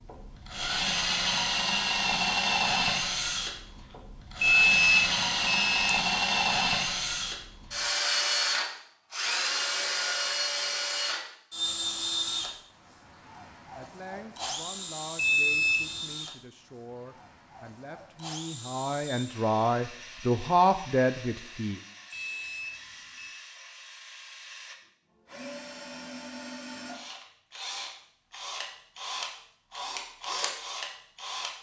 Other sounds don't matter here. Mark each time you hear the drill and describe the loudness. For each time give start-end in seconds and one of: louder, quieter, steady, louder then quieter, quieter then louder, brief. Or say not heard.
0.0-31.5 quieter then louder.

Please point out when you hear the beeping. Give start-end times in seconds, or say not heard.
4.4-5.9, 15.2-15.9, 22.1-23.4.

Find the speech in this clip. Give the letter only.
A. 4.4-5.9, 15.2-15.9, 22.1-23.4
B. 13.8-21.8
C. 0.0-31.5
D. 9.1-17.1
B.